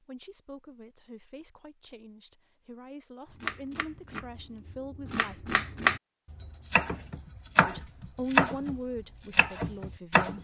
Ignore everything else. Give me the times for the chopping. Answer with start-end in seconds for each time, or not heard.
3.3-10.3.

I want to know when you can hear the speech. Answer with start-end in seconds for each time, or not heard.
0.0-5.5, 7.7-10.3.